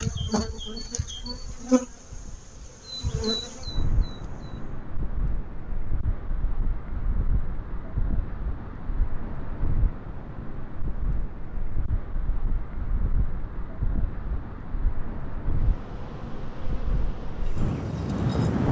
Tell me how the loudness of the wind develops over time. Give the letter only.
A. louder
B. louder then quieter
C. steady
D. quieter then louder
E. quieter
A.